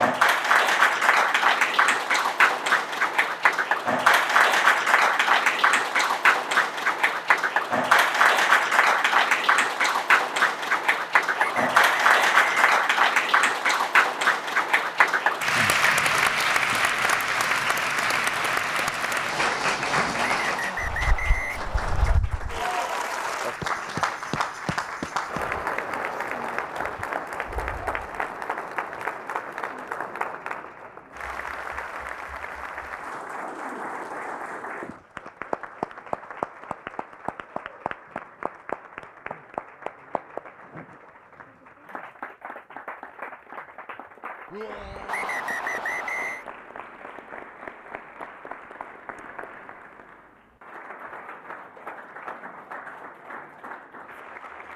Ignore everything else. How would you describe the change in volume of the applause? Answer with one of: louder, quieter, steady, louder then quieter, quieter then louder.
quieter.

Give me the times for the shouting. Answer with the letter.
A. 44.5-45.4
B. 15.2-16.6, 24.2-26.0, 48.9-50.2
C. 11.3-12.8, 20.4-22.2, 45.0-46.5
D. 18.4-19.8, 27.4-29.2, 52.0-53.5
A.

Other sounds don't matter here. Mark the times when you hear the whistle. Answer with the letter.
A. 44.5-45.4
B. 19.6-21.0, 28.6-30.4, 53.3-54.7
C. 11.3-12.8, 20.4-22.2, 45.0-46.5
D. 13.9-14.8
C.